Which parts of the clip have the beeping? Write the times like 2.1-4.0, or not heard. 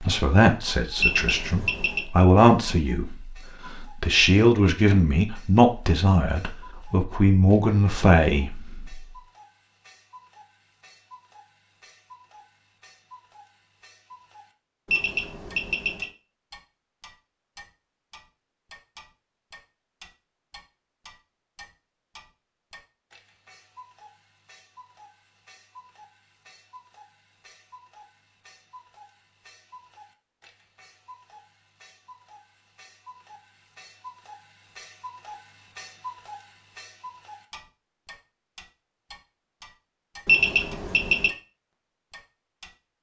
1.0-2.0, 14.8-16.1, 40.2-41.3.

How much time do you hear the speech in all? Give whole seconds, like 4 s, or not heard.
9 s.